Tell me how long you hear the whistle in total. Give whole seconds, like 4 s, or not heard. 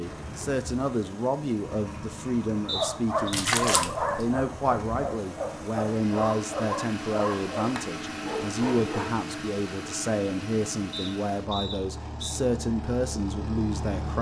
2 s.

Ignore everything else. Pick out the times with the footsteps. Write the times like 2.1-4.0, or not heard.
not heard.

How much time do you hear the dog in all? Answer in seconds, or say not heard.
7 s.